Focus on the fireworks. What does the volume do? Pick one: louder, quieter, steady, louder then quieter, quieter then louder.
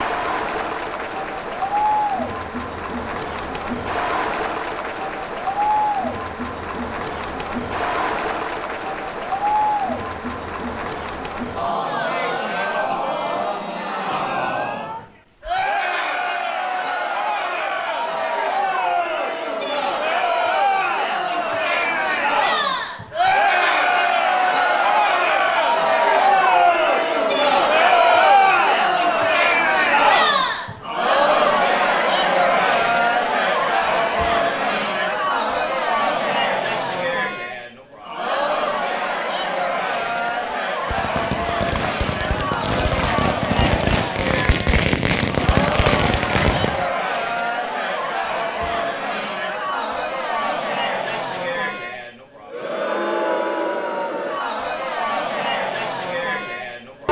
louder.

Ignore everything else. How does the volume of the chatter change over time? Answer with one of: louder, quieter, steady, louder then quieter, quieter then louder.
louder then quieter.